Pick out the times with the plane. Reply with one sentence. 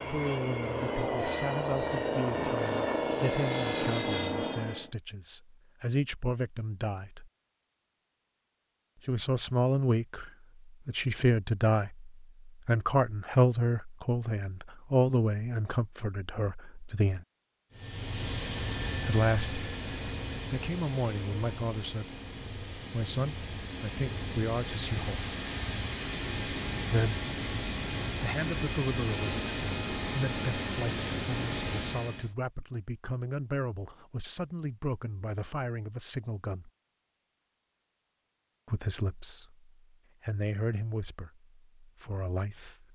The plane can be heard from 0.0 to 4.9 s and from 17.7 to 32.3 s.